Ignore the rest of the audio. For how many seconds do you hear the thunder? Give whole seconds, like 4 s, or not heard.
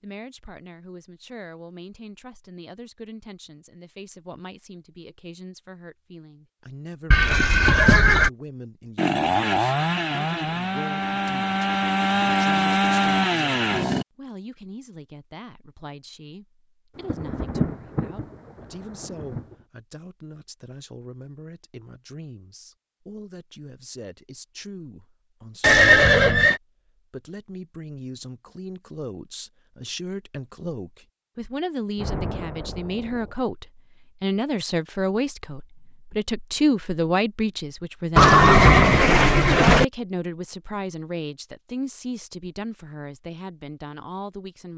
4 s.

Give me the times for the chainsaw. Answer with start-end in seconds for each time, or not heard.
8.9-14.1.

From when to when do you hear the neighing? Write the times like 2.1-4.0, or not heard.
7.1-8.3, 25.6-26.6, 38.1-39.9.